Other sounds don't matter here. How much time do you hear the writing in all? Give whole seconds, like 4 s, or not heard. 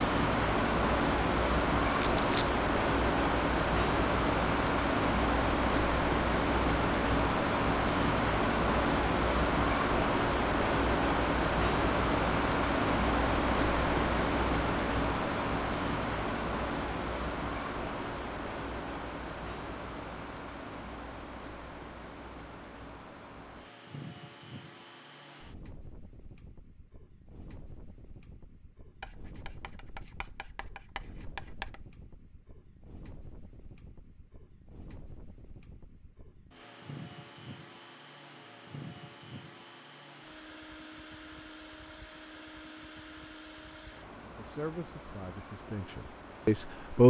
3 s.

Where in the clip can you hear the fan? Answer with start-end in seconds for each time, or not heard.
0.0-47.0.